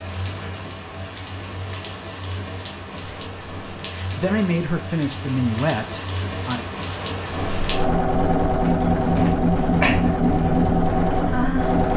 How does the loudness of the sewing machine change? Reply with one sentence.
The volume of the sewing machine stays about the same.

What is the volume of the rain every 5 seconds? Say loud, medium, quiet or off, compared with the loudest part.
quiet, loud, loud.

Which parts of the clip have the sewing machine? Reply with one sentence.
The sewing machine can be heard from 7.3 to 11.9 s.